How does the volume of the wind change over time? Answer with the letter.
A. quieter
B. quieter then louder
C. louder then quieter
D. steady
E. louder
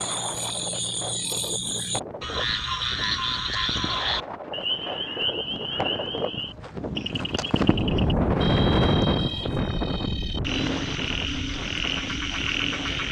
C.